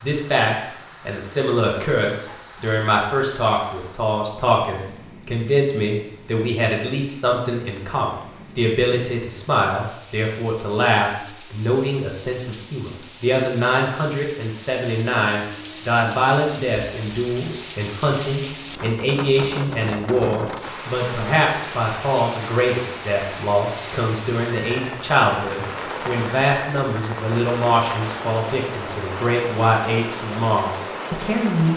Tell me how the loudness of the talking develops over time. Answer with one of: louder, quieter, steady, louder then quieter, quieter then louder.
steady.